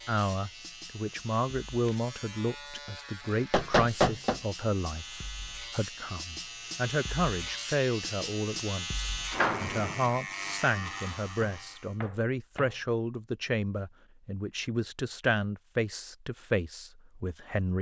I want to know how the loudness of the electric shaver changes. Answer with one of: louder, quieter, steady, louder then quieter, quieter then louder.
louder.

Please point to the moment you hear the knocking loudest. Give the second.
4 s.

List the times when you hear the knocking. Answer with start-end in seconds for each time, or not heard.
3.5-4.4, 11.4-12.8.